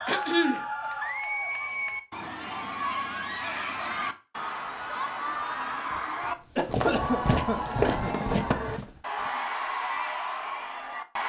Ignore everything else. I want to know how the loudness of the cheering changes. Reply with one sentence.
The volume of the cheering stays about the same.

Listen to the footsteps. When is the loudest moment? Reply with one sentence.
The loudest moment of the footsteps is at 8 seconds.